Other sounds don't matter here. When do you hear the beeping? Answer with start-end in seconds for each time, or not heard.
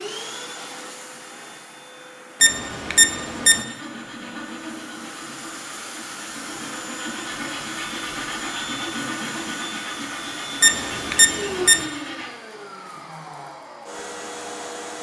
2.4-3.6, 10.6-11.8.